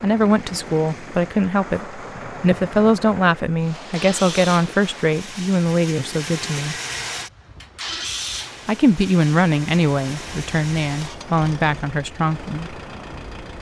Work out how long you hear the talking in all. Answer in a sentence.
The talking can be heard for 11 seconds in total.